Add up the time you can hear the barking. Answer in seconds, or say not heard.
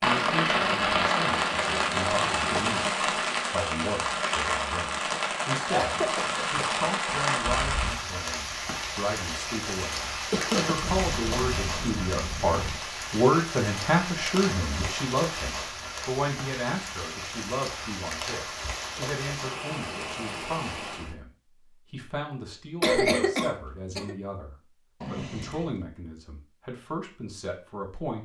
not heard.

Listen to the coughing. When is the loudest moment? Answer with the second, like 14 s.
23 s.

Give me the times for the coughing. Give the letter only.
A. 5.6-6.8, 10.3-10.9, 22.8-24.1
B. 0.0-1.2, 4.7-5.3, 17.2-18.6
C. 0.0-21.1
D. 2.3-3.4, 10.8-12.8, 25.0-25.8
A.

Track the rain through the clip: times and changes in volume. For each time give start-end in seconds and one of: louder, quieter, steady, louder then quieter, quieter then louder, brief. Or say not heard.
0.0-21.1 quieter.